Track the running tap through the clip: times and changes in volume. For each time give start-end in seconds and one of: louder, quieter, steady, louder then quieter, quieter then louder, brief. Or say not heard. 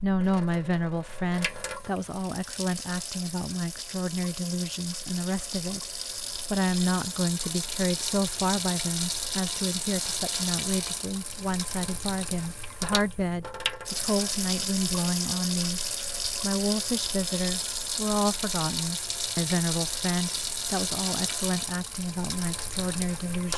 0.0-23.5 louder.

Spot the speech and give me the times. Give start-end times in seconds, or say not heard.
0.0-5.9, 6.5-15.8, 16.4-23.5.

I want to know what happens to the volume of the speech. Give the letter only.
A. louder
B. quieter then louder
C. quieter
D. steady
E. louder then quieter
D.